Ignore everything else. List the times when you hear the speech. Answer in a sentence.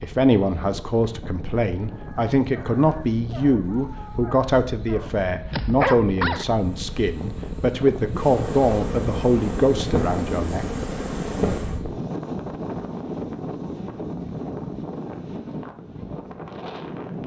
The speech can be heard from 0.0 to 10.7 s.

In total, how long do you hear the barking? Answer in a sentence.
The barking can be heard for 5 seconds in total.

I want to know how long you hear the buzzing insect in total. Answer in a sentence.
The buzzing insect can be heard for 5 seconds in total.